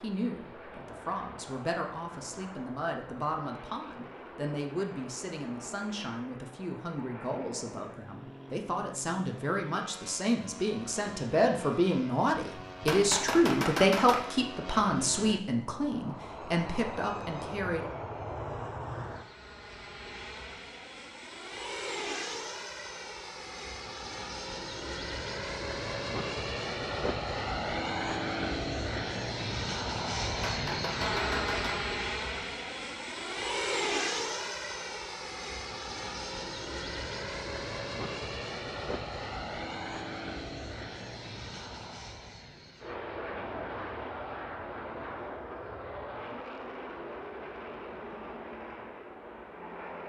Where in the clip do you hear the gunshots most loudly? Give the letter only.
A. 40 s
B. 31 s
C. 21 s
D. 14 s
D.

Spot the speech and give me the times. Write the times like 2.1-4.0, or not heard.
0.0-17.9.